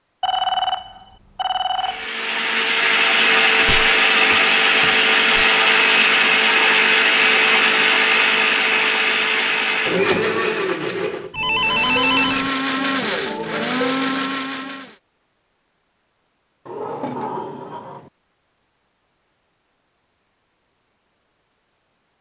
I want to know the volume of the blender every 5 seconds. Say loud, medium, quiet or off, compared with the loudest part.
loud, loud, medium, off, off.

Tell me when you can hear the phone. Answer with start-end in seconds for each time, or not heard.
0.2-2.0, 11.3-12.5.